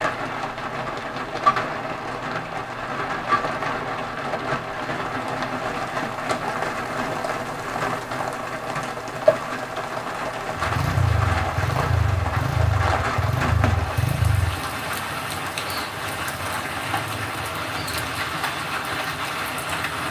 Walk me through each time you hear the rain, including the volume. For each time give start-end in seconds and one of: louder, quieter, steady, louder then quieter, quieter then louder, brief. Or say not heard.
0.0-20.0 steady.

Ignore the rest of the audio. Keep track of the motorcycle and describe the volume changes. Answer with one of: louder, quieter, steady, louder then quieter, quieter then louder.
steady.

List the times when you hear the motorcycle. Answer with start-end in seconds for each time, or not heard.
10.6-14.7.